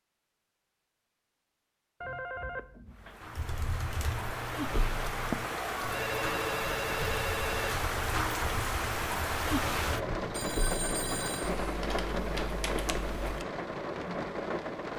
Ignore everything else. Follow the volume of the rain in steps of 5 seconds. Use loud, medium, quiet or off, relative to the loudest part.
medium, loud, loud.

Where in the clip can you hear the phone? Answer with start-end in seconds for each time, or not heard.
2.0-3.2, 5.9-7.8, 10.3-11.6.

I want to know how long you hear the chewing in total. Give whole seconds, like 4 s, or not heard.
not heard.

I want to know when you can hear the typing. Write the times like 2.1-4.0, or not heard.
3.2-13.4.